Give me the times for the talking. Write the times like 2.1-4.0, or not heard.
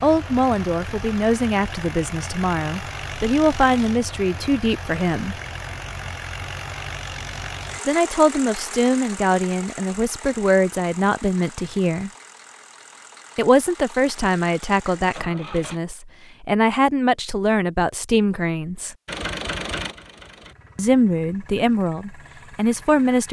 0.0-5.3, 7.8-12.1, 13.3-18.9, 20.8-23.2.